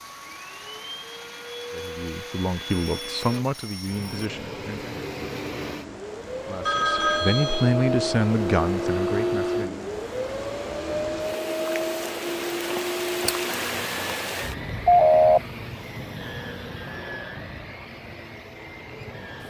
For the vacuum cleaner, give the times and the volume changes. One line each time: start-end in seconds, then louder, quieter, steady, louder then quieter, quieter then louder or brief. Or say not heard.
0.0-19.4 louder then quieter.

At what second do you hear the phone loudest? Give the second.
15 s.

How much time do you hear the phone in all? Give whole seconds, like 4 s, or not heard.
3 s.